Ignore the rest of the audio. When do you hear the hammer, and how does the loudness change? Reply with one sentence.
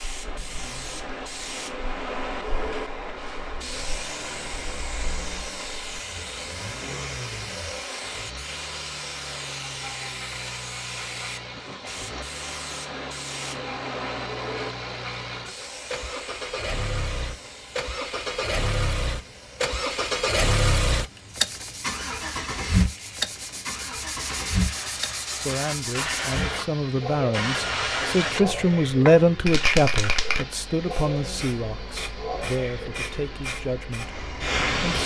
You can't hear the hammer here.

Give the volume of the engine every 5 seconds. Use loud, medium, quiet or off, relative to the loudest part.
quiet, quiet, medium, loud, loud, medium, medium.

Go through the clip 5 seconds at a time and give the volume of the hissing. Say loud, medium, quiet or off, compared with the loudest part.
medium, medium, medium, quiet, quiet, loud, loud.